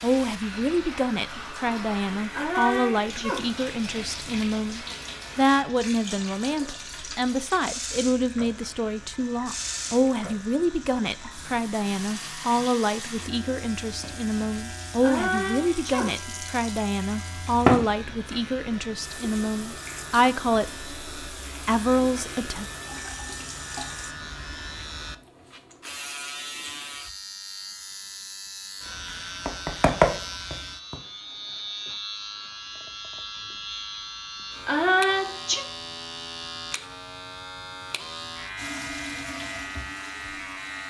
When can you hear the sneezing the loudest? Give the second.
35 s.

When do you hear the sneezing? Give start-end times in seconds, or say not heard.
2.3-3.5, 15.0-16.1, 34.6-35.6.